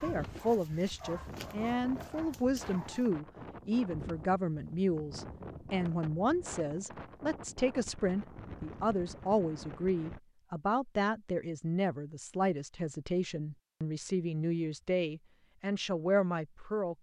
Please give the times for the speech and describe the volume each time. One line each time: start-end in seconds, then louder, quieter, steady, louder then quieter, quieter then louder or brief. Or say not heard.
0.0-16.9 steady.